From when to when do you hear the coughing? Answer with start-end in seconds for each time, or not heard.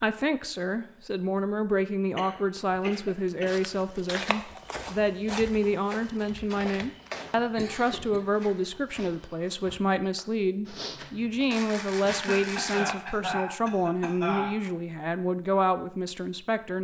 2.1-3.6, 7.5-8.2, 12.1-14.7.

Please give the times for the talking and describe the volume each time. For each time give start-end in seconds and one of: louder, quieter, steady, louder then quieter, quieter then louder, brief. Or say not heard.
0.0-16.7 steady.